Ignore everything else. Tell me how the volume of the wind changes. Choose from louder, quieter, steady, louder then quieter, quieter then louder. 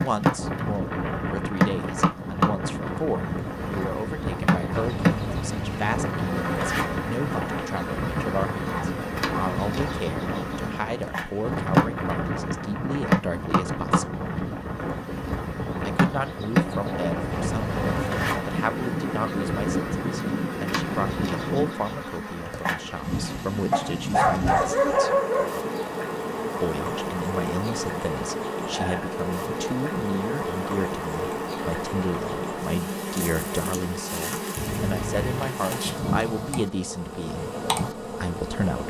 steady.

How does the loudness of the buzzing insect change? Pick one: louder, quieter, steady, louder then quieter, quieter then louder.
steady.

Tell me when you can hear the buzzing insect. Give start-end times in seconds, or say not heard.
0.0-38.8.